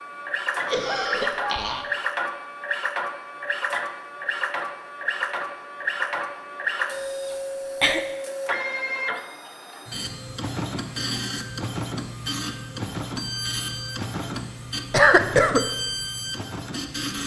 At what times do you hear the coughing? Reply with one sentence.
You can hear the coughing from 0.7 to 1.9 s, from 7.0 to 8.0 s and from 14.9 to 15.7 s.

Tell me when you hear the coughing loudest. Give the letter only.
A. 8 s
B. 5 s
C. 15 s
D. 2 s
C.